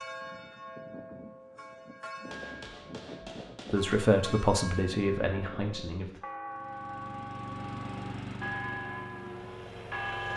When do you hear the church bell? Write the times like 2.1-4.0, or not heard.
0.0-10.3.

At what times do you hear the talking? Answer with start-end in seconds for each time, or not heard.
3.7-6.2.